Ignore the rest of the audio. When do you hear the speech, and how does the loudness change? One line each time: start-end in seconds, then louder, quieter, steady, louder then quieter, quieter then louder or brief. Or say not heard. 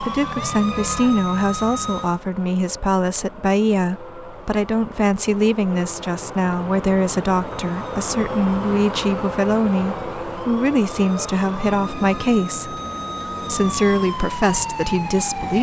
0.0-12.8 steady
13.4-15.5 brief.